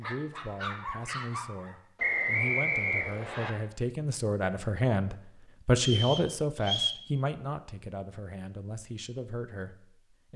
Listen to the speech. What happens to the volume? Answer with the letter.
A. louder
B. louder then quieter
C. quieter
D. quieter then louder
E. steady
B.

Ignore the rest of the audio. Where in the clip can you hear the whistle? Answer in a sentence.
The whistle can be heard from 1.9 to 3.5 s and from 5.8 to 7.0 s.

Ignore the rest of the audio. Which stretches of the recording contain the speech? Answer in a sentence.
You can hear the speech from 0.0 to 10.3 s.